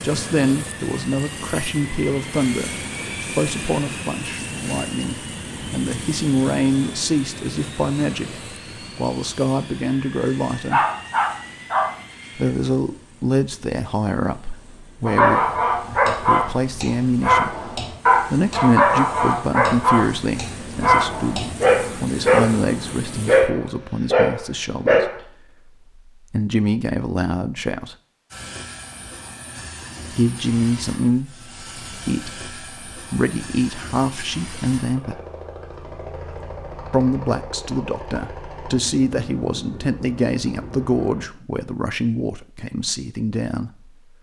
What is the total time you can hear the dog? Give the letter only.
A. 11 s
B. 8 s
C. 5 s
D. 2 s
A.